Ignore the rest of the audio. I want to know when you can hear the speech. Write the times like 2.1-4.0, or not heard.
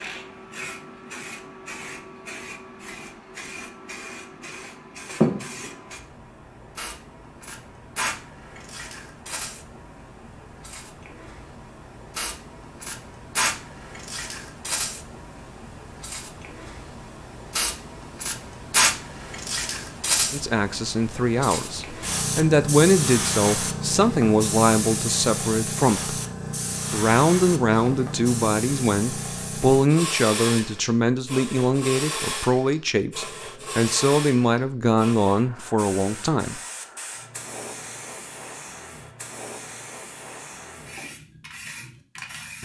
20.3-26.1, 26.9-36.6.